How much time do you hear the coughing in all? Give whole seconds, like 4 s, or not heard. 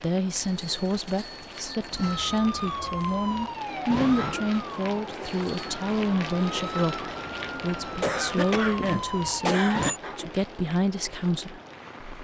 2 s.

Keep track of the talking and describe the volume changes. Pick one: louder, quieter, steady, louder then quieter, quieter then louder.
steady.